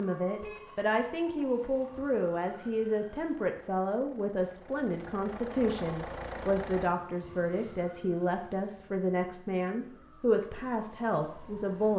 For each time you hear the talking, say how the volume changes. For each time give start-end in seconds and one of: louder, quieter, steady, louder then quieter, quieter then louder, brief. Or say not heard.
0.0-11.9 steady.